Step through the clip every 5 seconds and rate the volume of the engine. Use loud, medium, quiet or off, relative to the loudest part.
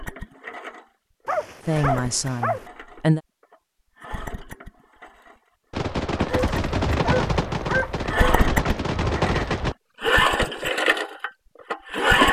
quiet, medium, loud.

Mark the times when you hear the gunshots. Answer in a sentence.
The gunshots can be heard from 5.7 to 9.8 s.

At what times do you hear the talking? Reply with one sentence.
You can hear the talking from 1.6 to 3.2 s.